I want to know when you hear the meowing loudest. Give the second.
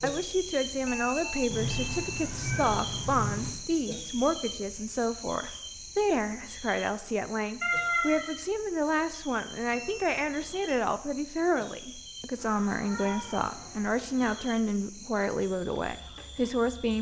8 s.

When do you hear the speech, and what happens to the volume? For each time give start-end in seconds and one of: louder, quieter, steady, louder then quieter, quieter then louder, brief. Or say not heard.
0.0-16.9 steady.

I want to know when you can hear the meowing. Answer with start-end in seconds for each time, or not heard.
1.5-3.5, 7.6-8.3, 12.3-14.4.